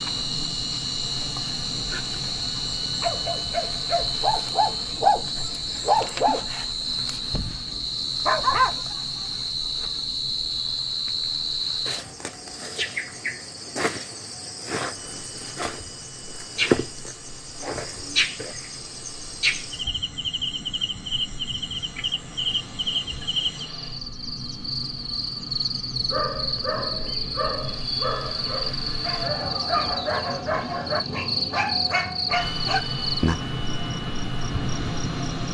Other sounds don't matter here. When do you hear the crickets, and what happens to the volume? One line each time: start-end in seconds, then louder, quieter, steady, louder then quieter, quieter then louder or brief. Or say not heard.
0.0-35.5 steady.